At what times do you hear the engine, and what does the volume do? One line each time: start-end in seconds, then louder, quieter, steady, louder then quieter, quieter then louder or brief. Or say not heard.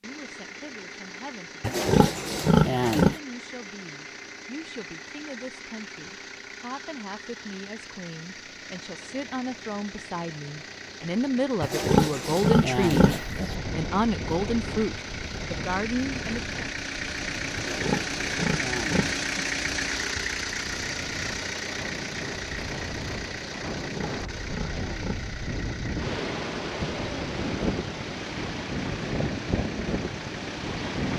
0.0-31.1 louder then quieter.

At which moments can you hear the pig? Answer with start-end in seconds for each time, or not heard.
1.6-3.1, 11.6-13.6, 17.6-19.5, 23.8-25.4.